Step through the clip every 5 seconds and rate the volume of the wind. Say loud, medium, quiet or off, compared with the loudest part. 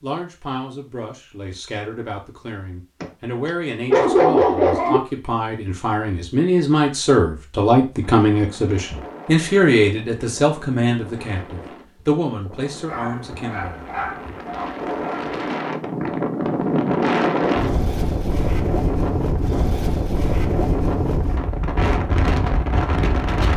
off, quiet, quiet, loud, loud.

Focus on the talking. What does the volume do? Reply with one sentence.
The loudness of the talking goes up, then down.